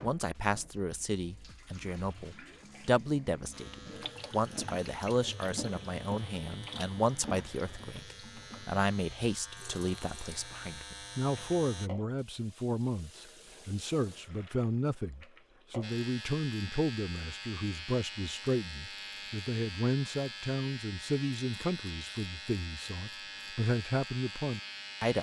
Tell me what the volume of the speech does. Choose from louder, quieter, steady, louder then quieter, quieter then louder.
steady.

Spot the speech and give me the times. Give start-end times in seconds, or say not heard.
0.0-25.1.